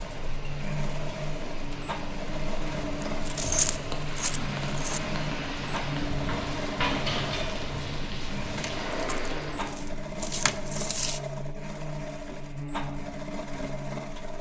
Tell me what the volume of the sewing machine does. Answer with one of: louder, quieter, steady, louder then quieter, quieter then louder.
steady.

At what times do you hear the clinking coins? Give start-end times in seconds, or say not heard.
3.0-5.0, 8.6-11.2.